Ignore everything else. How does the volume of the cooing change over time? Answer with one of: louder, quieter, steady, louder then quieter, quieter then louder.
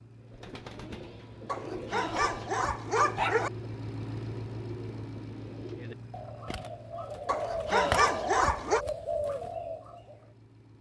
louder.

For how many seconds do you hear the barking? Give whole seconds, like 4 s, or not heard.
4 s.